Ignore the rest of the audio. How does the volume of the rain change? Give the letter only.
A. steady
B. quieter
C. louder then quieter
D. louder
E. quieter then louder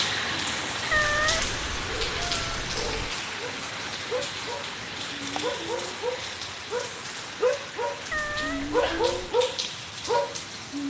B.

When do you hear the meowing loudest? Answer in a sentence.
The volume of the meowing peaks at 1 second.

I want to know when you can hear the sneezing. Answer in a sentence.
The sneezing can be heard from 8.6 to 9.2 s.